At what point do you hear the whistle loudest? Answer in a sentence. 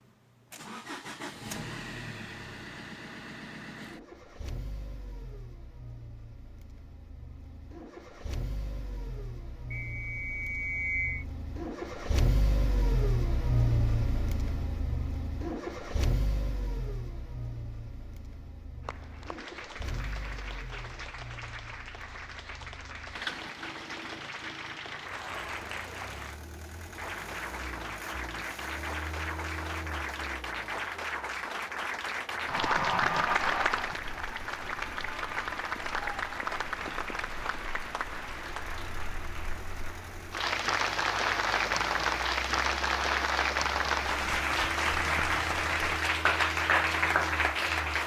The volume of the whistle peaks at 11 seconds.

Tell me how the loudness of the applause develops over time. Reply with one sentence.
The volume of the applause goes up.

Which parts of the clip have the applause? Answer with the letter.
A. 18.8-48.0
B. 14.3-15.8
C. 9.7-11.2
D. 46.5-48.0
A.